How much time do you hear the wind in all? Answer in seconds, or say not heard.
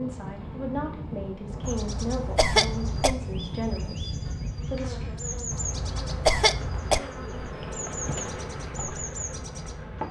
10 s.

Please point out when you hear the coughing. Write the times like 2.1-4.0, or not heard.
1.6-3.1, 5.5-7.0.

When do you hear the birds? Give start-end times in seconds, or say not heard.
1.6-10.0.